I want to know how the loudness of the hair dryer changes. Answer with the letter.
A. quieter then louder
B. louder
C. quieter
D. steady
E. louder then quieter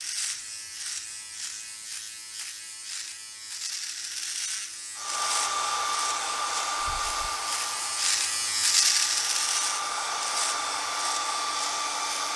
A.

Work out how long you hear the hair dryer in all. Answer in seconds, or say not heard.
7 s.